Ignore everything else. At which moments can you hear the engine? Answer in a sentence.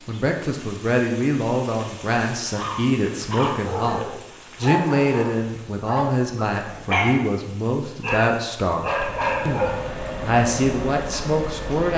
You can hear the engine from 8.9 to 11.9 s.